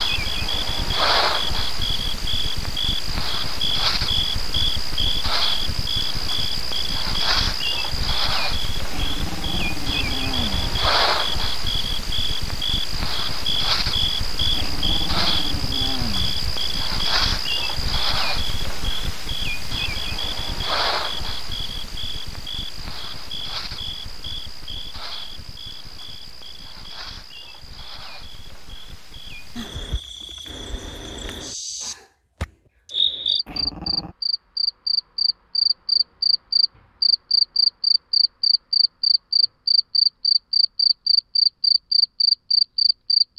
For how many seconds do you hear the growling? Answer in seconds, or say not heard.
5 s.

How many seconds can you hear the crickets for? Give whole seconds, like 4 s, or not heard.
43 s.